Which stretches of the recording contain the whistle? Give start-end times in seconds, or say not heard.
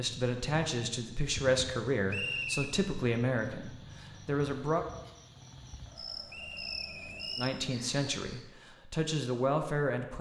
2.1-2.8, 6.2-7.5.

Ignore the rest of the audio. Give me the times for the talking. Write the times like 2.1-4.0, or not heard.
0.0-4.8, 7.3-10.1.